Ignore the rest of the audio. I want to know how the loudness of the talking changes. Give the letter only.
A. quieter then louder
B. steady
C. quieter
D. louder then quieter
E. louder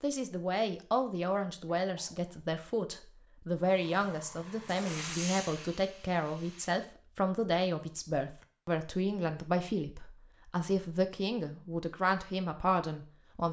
B.